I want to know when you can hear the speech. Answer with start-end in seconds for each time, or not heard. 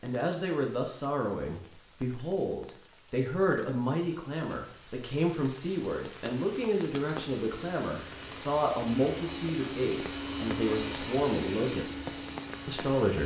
0.0-13.2.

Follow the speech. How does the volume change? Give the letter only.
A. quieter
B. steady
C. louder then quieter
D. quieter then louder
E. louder
B.